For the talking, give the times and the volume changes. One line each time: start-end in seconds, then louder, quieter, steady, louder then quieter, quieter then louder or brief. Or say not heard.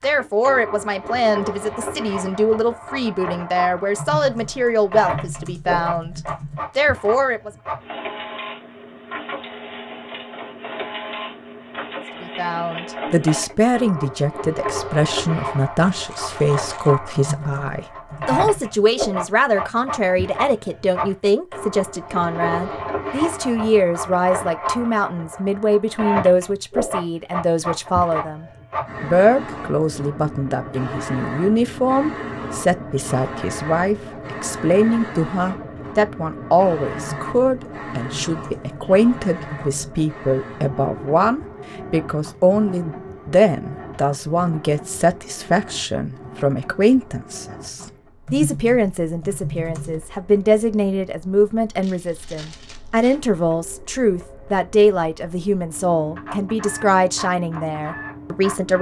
0.0-7.5 steady
12.2-58.7 steady.